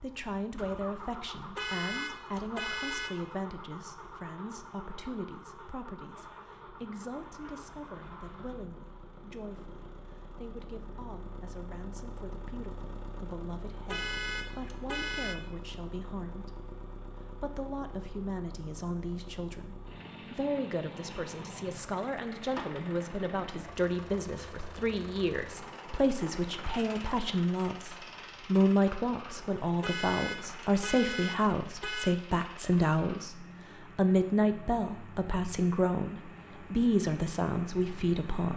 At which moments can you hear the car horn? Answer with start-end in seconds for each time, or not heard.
1.6-3.3, 13.8-15.3, 29.8-32.1.